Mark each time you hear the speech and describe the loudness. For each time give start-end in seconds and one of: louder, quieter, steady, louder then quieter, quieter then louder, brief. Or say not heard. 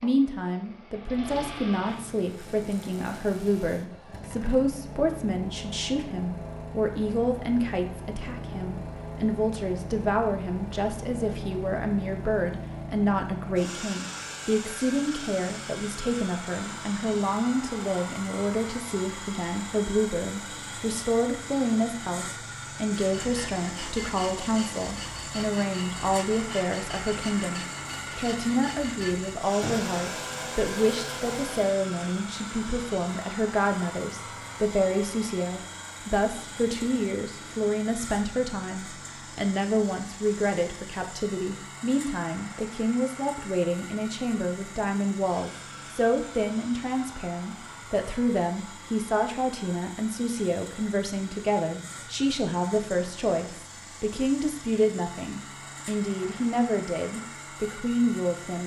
0.0-58.6 steady.